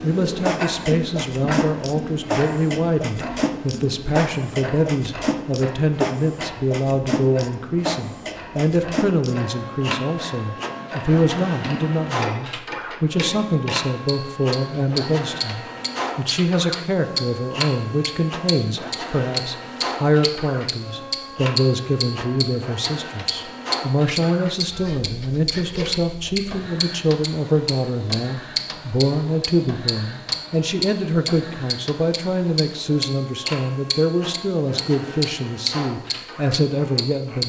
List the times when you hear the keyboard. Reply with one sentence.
The keyboard can't be heard in this clip.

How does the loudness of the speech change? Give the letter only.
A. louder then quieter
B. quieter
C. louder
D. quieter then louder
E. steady
E.